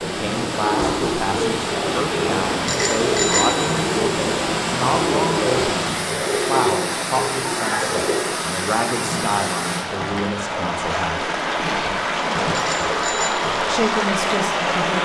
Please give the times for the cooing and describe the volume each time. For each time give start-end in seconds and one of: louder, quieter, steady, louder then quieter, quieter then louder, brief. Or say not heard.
0.1-8.2 steady.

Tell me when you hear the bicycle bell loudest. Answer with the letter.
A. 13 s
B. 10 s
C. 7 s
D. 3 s
D.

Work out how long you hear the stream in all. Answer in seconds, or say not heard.
15 s.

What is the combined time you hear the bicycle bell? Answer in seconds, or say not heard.
2 s.